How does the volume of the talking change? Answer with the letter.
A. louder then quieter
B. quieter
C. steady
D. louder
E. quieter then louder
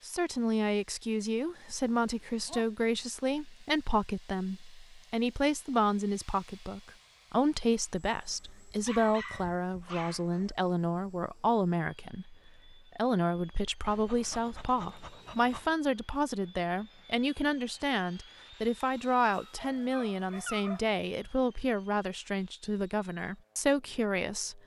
C.